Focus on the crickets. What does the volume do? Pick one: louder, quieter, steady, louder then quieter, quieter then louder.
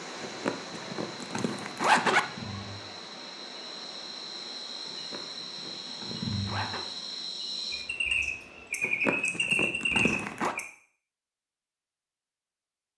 louder.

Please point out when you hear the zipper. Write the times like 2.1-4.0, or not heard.
0.2-2.2, 4.9-6.8, 8.8-10.6.